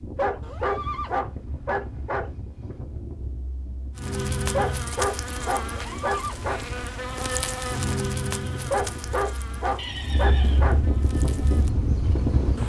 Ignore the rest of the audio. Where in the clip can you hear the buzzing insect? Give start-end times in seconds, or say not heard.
4.0-12.6.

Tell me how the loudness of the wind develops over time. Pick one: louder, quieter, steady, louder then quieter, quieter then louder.
louder.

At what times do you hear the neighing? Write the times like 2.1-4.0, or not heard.
0.4-1.2, 5.7-6.5, 9.8-10.8.